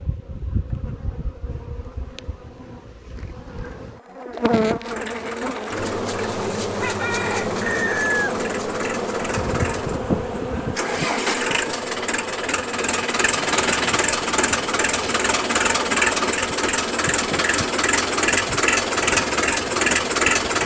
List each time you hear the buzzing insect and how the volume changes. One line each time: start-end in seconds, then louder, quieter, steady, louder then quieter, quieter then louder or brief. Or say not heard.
0.0-20.6 louder then quieter.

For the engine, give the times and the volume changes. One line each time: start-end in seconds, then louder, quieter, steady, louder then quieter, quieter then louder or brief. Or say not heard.
4.8-20.6 louder.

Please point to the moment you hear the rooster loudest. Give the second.
8 s.